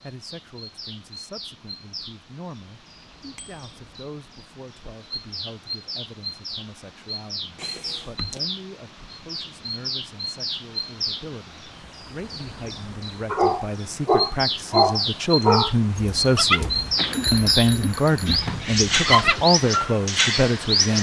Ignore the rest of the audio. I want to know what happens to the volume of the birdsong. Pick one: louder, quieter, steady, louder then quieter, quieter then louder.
louder.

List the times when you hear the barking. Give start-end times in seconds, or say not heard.
13.3-20.0.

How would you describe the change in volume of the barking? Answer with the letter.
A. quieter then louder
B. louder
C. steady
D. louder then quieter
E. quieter
A.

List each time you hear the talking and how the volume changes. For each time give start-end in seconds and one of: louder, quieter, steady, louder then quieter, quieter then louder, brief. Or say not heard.
0.0-20.9 louder.